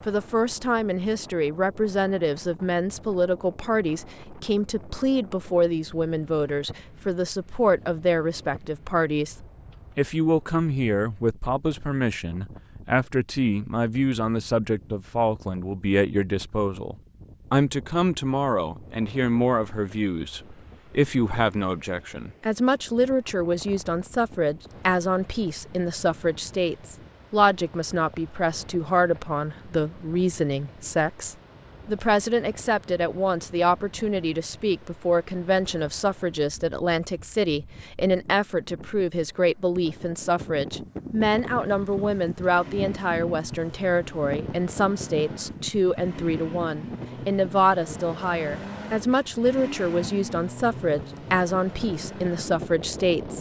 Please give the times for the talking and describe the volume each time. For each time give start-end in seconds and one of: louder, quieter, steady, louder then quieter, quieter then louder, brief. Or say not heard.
0.0-53.3 steady.